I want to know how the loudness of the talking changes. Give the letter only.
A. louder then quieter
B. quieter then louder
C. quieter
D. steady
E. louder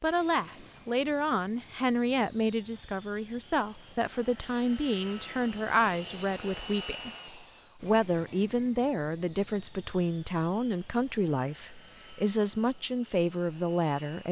D.